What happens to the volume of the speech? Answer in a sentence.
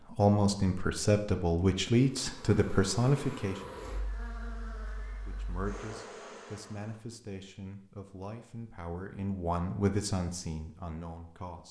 The loudness of the speech goes down, then up.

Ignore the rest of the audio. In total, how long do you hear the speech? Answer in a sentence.
The speech can be heard for 10 seconds in total.